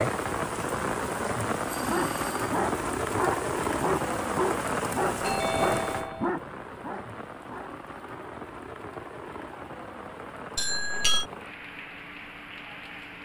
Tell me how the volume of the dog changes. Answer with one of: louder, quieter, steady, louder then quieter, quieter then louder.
quieter.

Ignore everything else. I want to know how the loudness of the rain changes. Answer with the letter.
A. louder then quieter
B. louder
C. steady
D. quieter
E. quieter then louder
D.